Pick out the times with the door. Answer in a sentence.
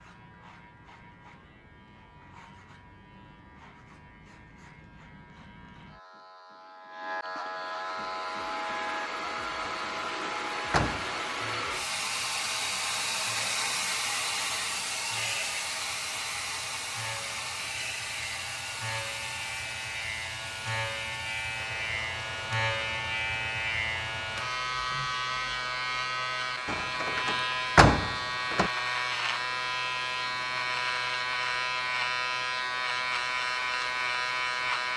The door can be heard from 9.7 to 11.2 s and from 26.6 to 28.7 s.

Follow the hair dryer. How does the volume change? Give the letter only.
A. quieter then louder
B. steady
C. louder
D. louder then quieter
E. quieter
E.